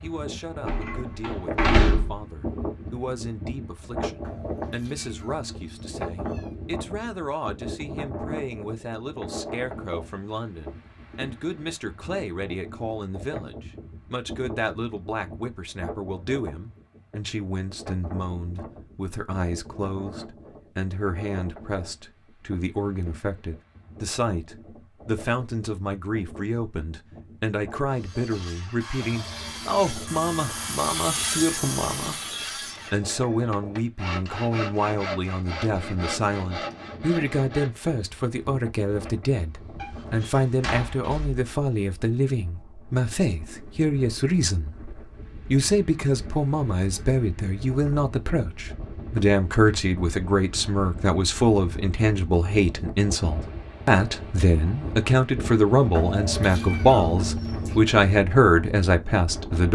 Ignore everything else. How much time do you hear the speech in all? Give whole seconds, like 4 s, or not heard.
59 s.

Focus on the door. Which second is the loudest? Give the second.
2 s.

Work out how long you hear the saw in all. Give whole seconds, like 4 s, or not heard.
10 s.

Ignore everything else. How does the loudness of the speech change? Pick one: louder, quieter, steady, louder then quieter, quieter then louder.
louder.